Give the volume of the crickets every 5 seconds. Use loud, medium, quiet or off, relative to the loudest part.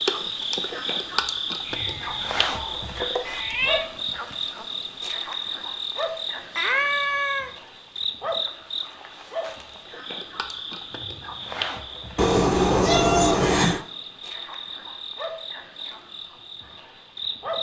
loud, loud, medium, medium.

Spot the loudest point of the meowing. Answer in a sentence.
The volume of the meowing peaks at 13 seconds.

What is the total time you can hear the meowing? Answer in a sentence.
You can hear the meowing for 5 seconds altogether.